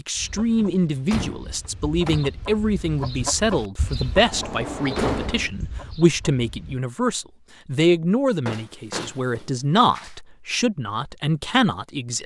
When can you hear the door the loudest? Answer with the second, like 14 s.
5 s.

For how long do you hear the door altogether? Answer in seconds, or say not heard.
5 s.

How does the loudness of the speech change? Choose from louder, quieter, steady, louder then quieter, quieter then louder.
steady.